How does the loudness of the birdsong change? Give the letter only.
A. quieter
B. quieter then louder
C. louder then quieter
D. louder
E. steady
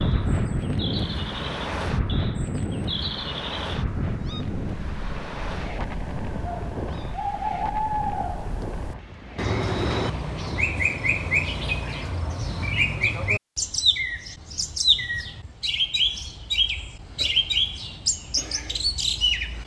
D.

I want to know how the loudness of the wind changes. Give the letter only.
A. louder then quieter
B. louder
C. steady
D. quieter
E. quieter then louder
D.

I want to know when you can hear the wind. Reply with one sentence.
You can hear the wind from 0.0 to 10.8 s.